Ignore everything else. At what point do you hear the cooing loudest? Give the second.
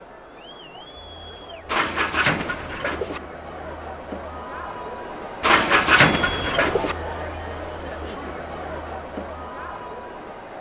6 s.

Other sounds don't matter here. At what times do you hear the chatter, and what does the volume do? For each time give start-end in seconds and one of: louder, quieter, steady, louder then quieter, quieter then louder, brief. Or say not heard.
0.0-10.5 louder.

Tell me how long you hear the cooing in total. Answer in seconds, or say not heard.
3 s.